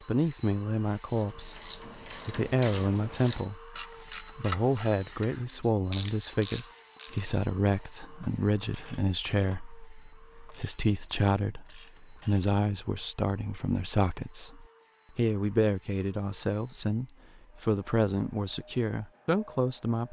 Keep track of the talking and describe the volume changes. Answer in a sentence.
The volume of the talking stays about the same.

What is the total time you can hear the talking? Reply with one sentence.
You can hear the talking for 20 seconds altogether.